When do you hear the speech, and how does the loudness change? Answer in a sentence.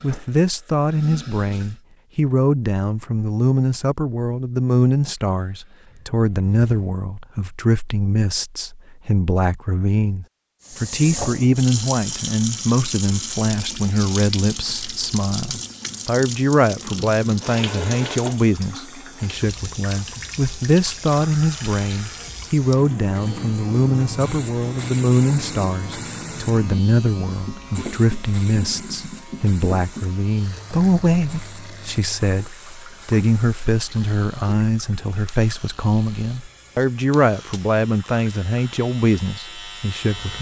The speech can be heard from 0.0 to 40.3 s, at a steady volume.